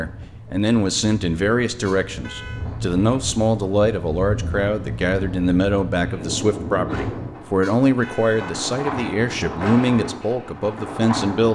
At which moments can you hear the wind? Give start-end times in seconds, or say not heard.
0.0-11.5.